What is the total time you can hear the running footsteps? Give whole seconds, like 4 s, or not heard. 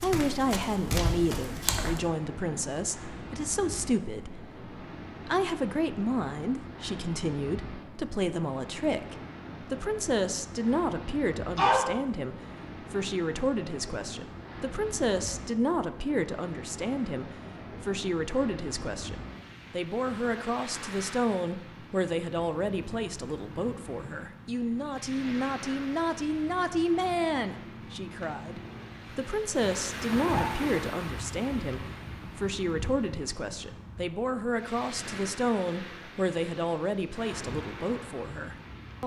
2 s.